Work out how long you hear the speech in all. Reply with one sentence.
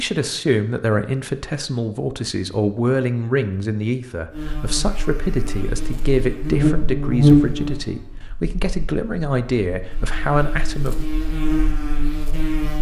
The speech can be heard for 11 seconds in total.